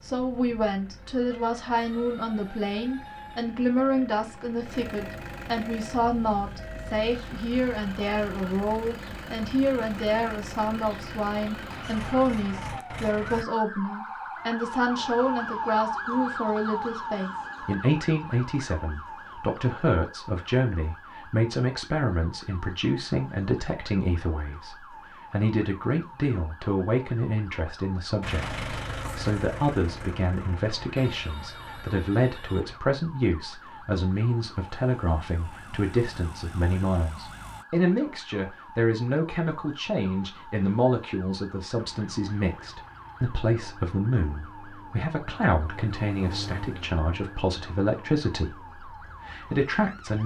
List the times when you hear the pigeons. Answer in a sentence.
The pigeons can't be heard in this clip.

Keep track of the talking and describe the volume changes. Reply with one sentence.
The loudness of the talking stays about the same.